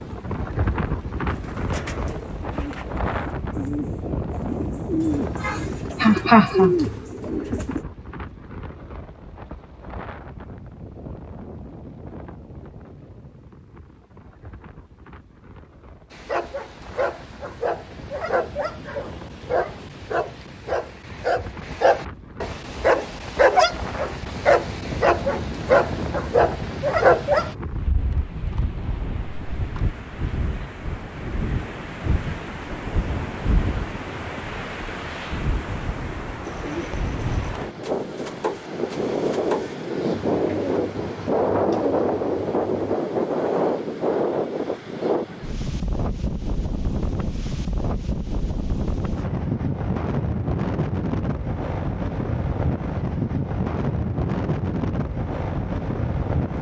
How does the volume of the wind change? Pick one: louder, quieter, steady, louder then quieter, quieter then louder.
quieter then louder.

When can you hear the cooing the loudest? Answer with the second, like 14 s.
7 s.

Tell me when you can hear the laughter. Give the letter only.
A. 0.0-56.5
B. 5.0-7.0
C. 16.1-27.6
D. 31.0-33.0
B.